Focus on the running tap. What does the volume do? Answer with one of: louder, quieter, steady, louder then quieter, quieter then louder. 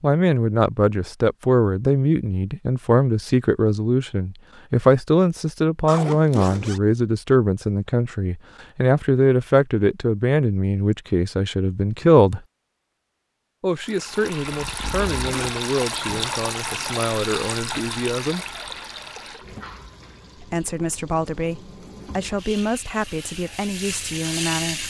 quieter then louder.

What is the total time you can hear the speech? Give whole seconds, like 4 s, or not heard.
22 s.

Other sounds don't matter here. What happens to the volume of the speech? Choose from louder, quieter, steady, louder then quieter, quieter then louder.
quieter.